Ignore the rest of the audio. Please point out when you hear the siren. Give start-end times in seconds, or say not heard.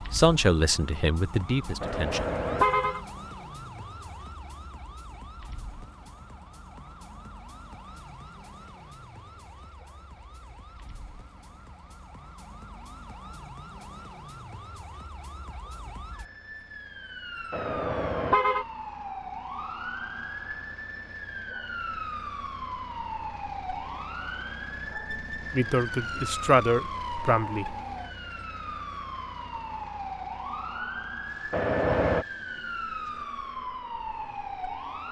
0.0-35.0.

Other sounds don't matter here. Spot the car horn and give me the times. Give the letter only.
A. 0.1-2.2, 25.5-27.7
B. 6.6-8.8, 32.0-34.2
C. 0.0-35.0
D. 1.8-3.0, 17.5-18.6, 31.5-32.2
D.